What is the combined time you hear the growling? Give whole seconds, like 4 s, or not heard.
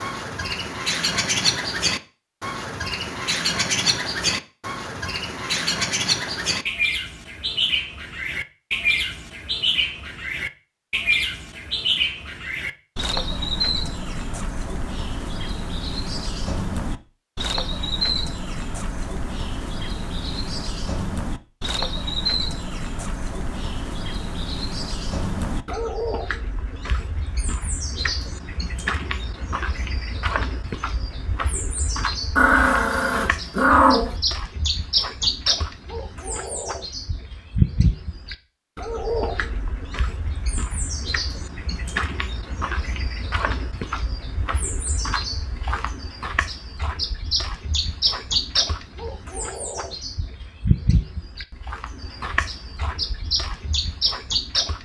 2 s.